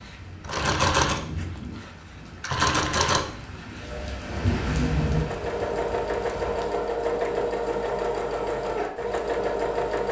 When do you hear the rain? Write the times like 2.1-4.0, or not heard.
0.0-6.8.